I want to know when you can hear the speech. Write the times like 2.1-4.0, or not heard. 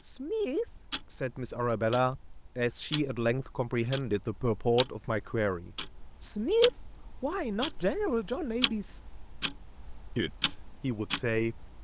0.0-9.0, 10.2-11.6.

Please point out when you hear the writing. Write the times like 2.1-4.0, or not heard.
not heard.